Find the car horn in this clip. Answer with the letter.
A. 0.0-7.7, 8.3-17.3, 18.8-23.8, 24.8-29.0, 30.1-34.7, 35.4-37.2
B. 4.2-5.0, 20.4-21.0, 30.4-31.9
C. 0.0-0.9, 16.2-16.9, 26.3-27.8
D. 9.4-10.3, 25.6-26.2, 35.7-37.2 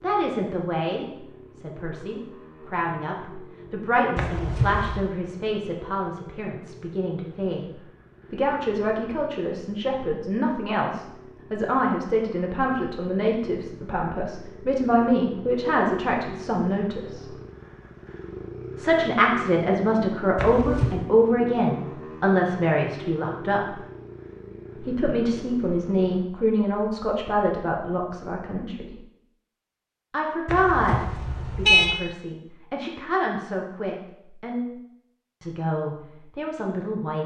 B.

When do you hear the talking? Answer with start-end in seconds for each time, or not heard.
0.0-7.7, 8.3-17.3, 18.8-23.8, 24.8-29.0, 30.1-34.7, 35.4-37.2.